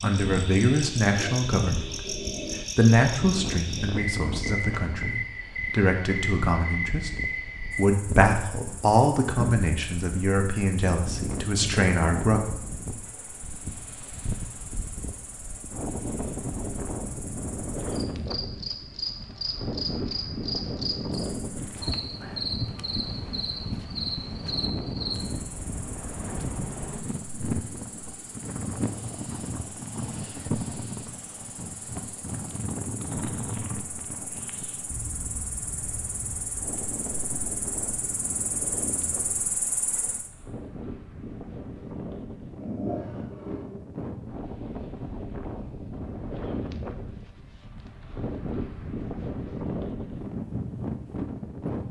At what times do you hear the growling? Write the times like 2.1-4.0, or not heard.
1.0-2.6, 42.6-43.8.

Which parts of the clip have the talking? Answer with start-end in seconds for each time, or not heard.
0.0-2.1, 2.8-12.4.